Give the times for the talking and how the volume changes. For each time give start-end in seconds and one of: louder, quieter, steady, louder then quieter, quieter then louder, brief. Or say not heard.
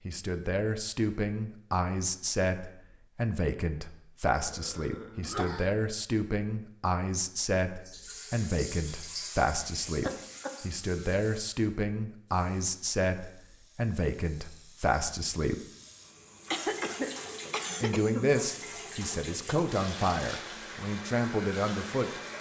0.1-15.6 steady
17.8-22.2 quieter then louder.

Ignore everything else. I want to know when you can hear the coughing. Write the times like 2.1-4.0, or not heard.
4.3-5.7, 10.0-10.6, 16.5-18.3.